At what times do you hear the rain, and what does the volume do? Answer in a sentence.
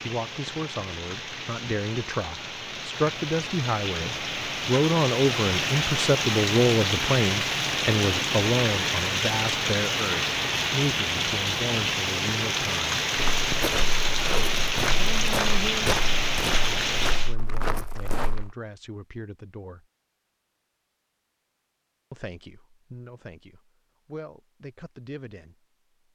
The rain can be heard from 0.0 to 17.4 s, getting louder.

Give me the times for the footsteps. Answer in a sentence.
The footsteps can be heard from 13.2 to 18.6 s.